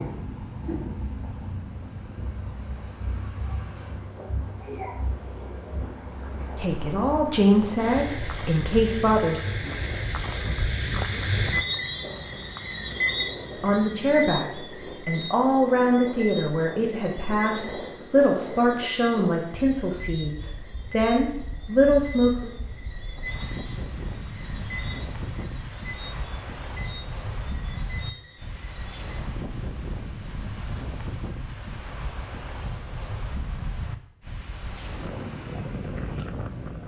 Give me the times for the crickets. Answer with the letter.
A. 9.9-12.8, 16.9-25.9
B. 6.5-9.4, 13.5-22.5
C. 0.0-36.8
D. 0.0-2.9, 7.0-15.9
C.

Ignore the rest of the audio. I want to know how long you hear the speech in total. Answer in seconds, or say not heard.
12 s.